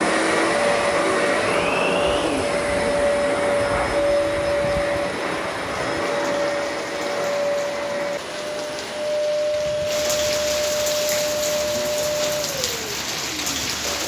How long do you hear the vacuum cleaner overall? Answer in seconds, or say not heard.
14 s.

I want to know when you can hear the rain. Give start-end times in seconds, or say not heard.
0.2-14.0.